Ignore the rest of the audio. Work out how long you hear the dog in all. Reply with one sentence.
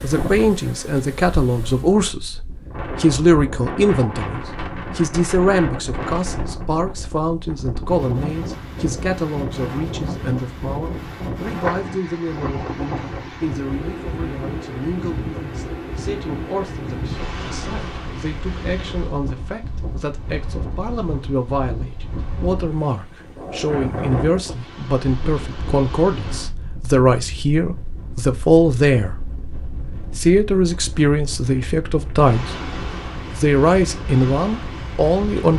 You can't hear the dog here.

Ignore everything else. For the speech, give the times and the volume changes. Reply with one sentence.
You can hear the speech from 0.0 to 29.4 s, getting quieter then louder; briefly from 30.1 to 32.5 s; and briefly from 33.3 to 35.5 s.